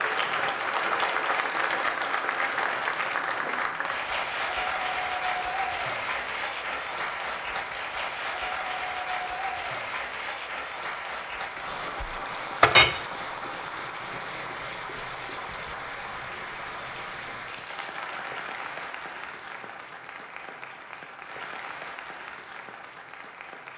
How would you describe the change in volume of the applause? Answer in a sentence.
The loudness of the applause goes down.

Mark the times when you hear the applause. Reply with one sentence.
The applause can be heard from 0.0 to 23.7 s.